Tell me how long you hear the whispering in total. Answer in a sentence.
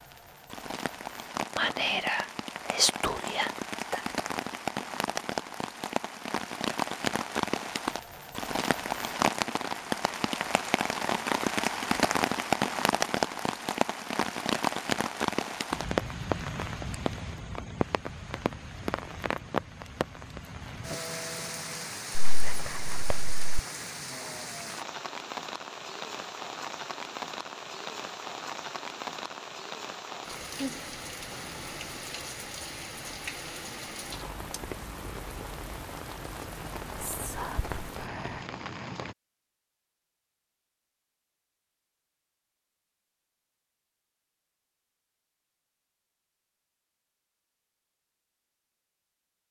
The whispering can be heard for 5 seconds in total.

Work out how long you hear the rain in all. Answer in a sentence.
You can hear the rain for 39 seconds altogether.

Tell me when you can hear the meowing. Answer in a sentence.
The meowing can't be heard in this clip.